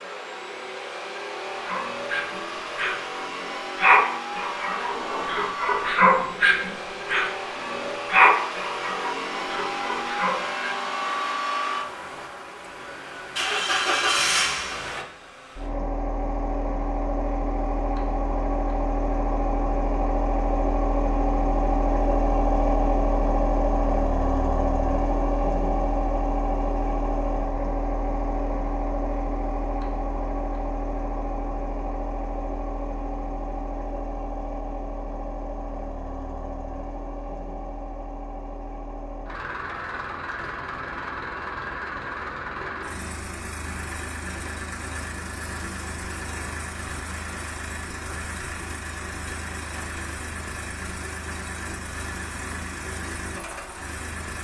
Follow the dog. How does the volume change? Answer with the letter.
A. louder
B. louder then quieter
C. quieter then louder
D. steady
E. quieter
B.